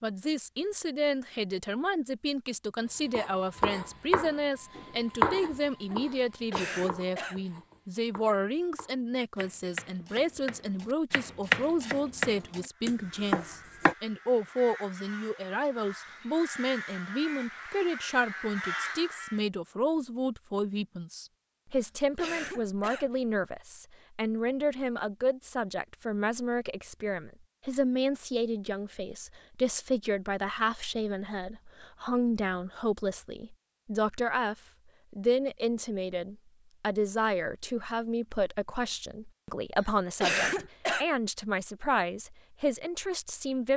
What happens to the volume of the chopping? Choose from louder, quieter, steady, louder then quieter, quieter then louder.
quieter then louder.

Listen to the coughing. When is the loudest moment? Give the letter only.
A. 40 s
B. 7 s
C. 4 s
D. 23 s
A.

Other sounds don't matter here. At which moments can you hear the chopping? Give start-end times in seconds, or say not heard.
3.1-13.9.